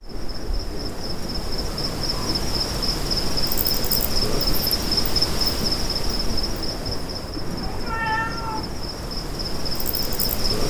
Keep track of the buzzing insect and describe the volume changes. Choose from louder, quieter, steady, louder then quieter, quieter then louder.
louder then quieter.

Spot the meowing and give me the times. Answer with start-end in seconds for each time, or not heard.
7.3-8.7.